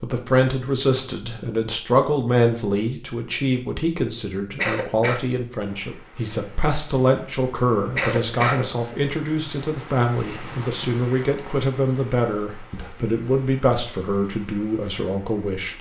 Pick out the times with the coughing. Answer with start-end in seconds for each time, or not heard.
4.5-5.2, 8.0-8.7.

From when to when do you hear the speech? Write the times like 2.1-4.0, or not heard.
0.0-15.7.